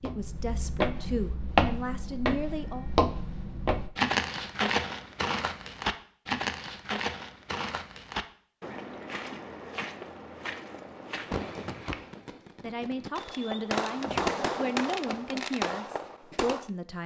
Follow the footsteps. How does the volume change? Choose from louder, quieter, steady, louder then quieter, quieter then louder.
quieter.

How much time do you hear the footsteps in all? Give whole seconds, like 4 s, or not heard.
12 s.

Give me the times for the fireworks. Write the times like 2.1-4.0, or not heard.
11.2-16.7.